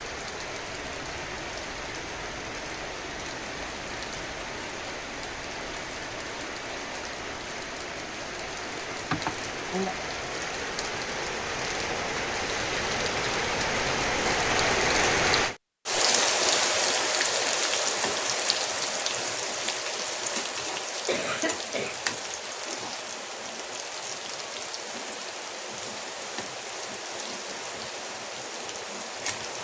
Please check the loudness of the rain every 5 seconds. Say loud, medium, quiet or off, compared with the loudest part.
medium, medium, loud, loud, medium, medium.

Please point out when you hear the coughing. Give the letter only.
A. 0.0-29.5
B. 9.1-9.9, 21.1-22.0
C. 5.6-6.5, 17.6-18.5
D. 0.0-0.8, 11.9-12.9
B.